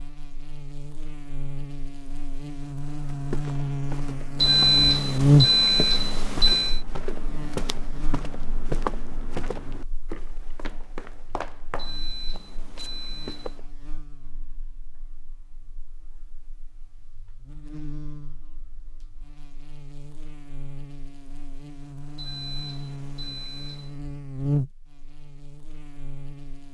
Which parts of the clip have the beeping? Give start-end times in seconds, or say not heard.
4.3-6.8, 11.8-13.6, 22.1-24.0.